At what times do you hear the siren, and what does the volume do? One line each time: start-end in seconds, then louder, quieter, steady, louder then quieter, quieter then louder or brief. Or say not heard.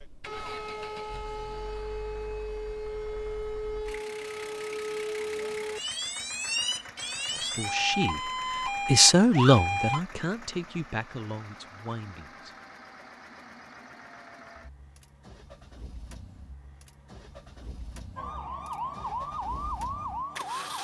0.0-10.0 louder
18.1-20.7 brief.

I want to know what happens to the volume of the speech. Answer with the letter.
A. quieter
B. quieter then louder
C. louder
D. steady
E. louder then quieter
E.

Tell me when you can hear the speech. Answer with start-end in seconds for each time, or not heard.
7.3-12.5.